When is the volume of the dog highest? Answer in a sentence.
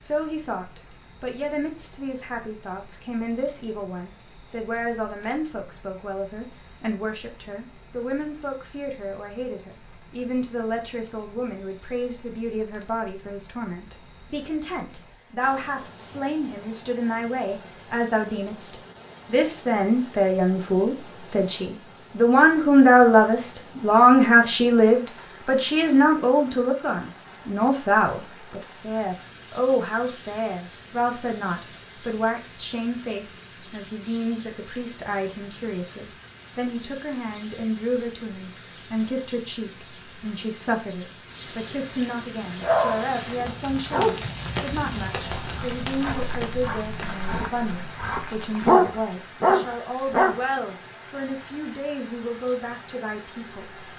The loudest moment of the dog is at 49 seconds.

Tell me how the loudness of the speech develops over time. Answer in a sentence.
The volume of the speech goes up, then down.